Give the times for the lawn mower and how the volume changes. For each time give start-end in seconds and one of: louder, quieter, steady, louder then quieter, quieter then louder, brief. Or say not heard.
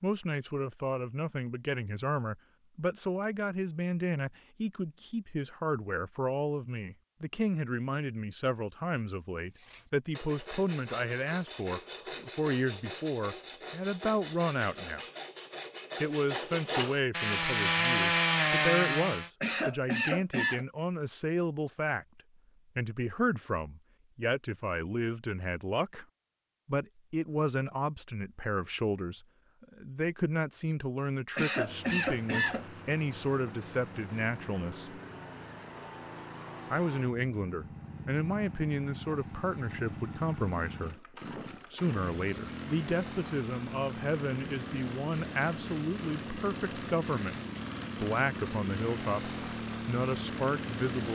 31.6-51.1 louder.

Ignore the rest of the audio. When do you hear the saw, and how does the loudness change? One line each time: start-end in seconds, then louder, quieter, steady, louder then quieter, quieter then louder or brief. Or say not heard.
9.5-19.3 louder.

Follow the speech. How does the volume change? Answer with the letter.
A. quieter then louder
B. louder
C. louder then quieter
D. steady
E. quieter
D.